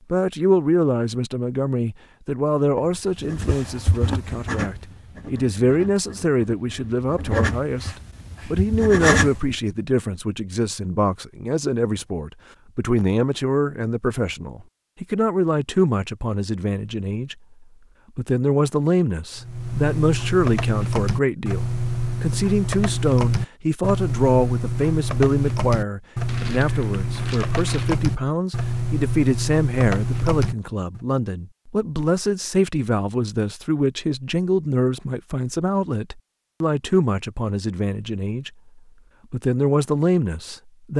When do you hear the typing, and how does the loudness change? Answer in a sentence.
You can hear the typing from 19.4 to 31.1 s, at a steady volume.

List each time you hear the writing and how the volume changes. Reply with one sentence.
The writing can be heard from 3.1 to 9.6 s, getting quieter then louder.